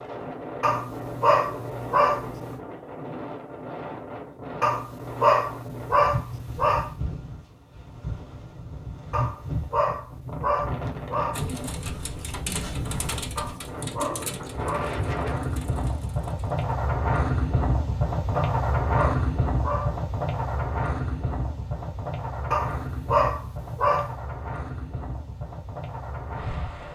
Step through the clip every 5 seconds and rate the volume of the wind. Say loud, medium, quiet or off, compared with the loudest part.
medium, medium, medium, loud, medium, medium.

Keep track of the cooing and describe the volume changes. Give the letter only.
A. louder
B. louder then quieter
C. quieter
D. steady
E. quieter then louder
C.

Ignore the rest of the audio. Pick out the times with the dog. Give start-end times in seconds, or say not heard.
0.6-2.5, 4.6-6.9, 9.1-11.4, 13.3-15.0, 18.3-20.1, 22.5-24.1.